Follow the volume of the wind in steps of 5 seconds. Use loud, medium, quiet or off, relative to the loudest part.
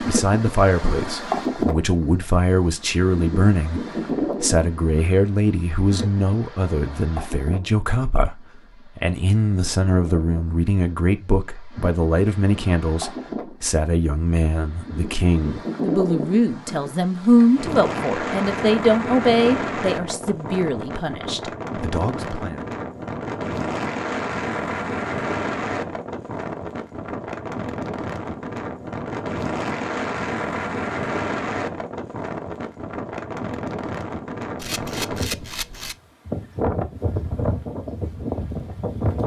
loud, medium, medium, loud, loud, loud, loud, loud.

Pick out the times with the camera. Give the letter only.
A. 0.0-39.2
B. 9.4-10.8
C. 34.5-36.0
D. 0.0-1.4
C.